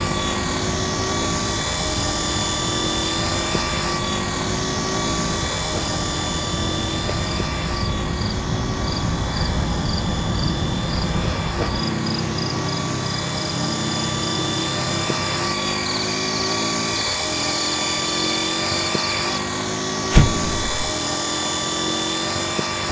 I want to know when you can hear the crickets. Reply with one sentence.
You can hear the crickets from 0.0 to 19.4 s.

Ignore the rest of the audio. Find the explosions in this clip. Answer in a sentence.
The explosions can be heard from 20.1 to 20.9 s.